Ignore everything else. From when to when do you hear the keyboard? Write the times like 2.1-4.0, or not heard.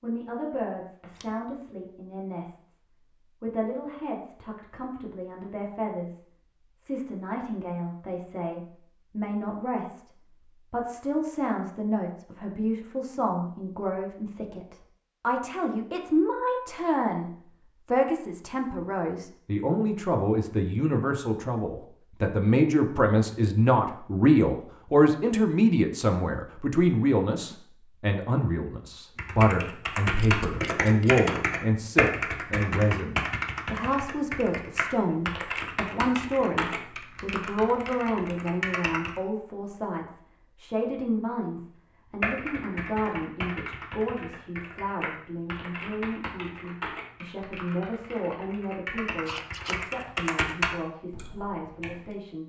29.1-39.2, 42.2-52.1.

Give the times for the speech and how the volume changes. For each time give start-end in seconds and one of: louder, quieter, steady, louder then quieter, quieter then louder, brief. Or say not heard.
0.0-2.8 brief
3.4-6.2 brief
6.8-17.3 louder
17.9-52.4 quieter.